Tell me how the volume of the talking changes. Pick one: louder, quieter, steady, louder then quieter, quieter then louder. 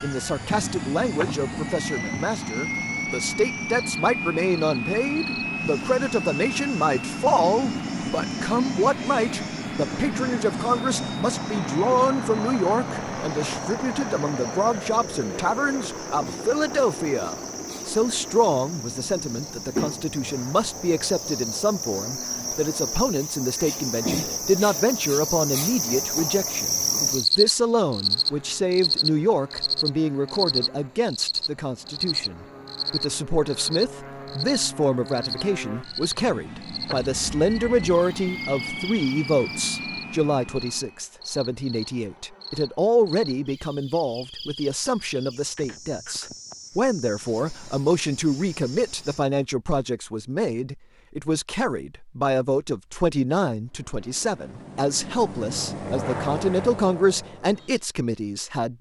steady.